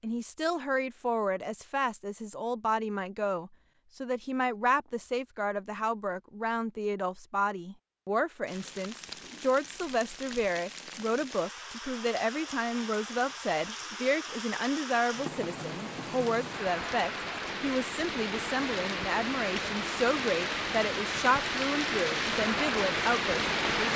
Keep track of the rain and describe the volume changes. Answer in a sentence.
The volume of the rain goes up.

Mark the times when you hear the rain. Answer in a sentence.
The rain can be heard from 8.4 to 23.9 s.